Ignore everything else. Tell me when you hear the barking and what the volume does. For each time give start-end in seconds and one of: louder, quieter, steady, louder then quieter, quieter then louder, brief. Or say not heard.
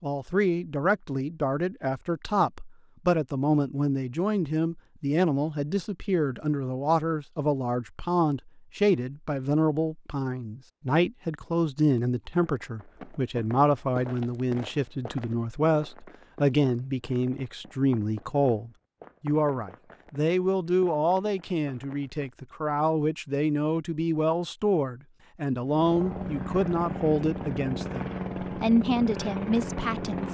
not heard.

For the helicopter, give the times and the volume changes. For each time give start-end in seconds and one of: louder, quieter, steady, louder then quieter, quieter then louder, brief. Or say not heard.
25.6-30.2 steady.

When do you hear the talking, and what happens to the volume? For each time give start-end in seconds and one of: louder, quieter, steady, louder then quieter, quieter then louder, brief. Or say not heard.
0.0-30.2 steady.